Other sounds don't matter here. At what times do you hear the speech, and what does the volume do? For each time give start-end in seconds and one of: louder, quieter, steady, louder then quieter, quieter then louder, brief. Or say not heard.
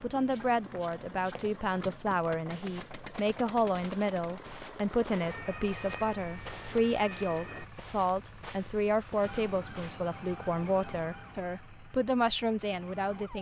0.0-13.3 steady.